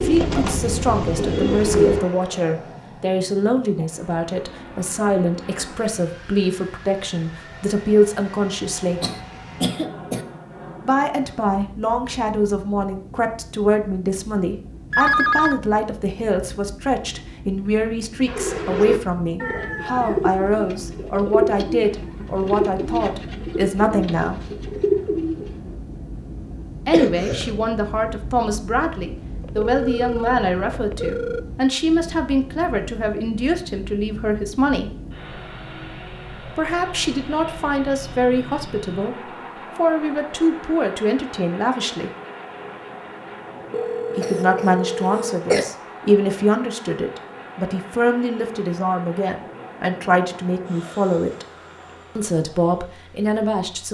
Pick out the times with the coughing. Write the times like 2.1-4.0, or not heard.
9.0-10.2, 26.9-27.6, 44.2-45.6.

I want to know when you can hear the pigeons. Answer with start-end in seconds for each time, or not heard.
0.0-2.0, 18.2-25.8.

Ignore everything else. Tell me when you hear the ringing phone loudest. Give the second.
15 s.